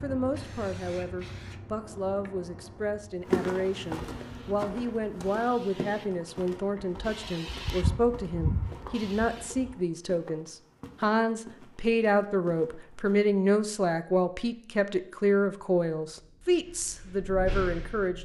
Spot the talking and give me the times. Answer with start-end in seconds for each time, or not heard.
0.0-18.2.